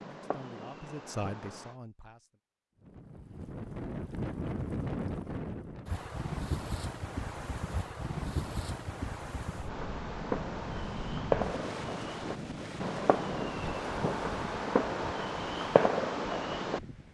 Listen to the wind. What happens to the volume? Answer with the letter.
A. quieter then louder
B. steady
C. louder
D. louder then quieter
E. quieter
E.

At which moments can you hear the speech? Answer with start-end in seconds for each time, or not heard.
0.1-2.3.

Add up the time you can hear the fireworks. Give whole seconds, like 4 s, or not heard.
9 s.